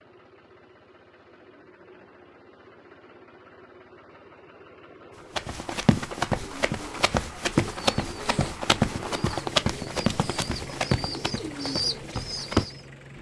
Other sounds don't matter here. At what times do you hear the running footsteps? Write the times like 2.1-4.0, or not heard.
5.1-12.7.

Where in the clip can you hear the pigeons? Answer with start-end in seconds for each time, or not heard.
6.3-12.8.